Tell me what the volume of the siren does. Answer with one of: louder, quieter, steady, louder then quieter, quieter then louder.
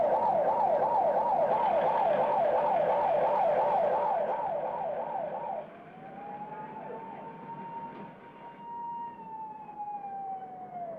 quieter.